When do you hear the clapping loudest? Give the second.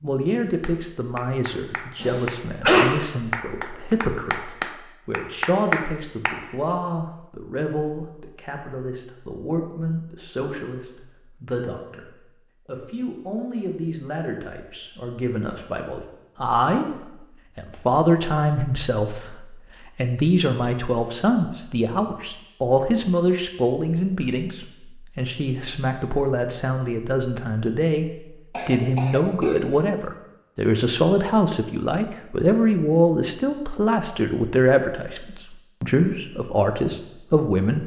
6 s.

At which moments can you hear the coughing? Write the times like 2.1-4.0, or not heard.
2.0-2.9, 28.5-29.6.